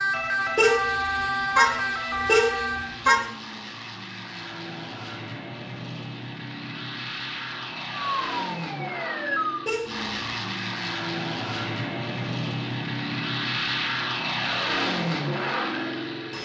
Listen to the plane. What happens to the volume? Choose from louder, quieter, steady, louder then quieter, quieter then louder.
louder.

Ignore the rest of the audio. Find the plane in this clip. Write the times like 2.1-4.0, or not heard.
0.0-16.3.